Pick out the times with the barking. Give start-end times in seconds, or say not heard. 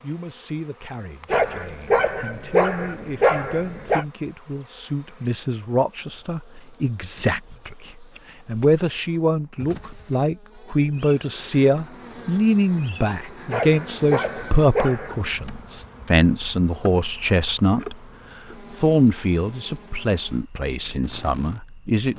1.3-4.0, 13.5-15.3.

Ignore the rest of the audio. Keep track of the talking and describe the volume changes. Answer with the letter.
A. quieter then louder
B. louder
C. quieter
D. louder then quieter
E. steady
B.